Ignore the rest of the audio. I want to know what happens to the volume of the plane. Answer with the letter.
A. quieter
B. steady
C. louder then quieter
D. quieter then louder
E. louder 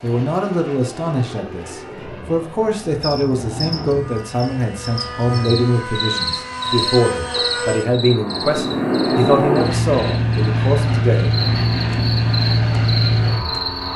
E.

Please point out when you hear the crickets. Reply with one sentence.
You can hear the crickets from 2.9 to 13.9 s.